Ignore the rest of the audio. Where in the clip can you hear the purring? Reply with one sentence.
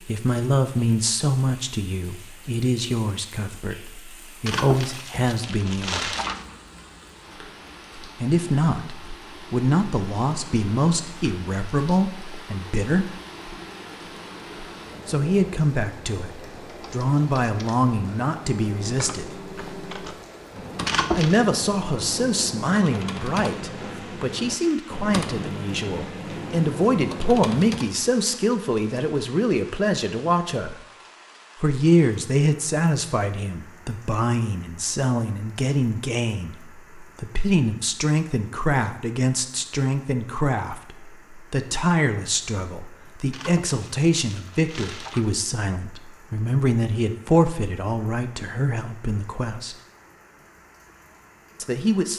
You can't hear the purring here.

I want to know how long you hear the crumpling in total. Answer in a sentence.
You can hear the crumpling for 5 seconds altogether.